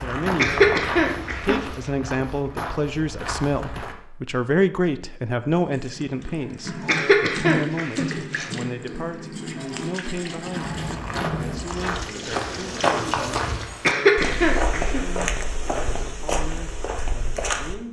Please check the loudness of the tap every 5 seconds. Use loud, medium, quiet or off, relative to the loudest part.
off, loud, loud, off.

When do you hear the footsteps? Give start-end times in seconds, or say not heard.
0.0-4.0, 10.5-17.8.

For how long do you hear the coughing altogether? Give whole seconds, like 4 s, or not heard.
4 s.